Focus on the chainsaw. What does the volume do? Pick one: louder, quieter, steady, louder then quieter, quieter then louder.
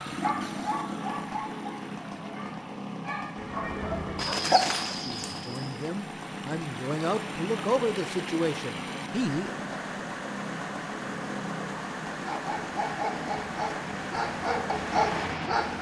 steady.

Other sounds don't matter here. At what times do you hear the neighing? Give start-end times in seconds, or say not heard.
3.4-4.3.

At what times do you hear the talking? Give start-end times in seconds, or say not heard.
5.0-9.5.